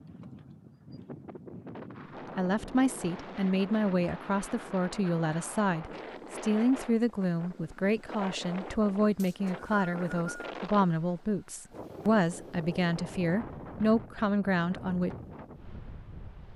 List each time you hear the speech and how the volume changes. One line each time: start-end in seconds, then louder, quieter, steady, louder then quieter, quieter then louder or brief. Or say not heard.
2.4-15.1 steady.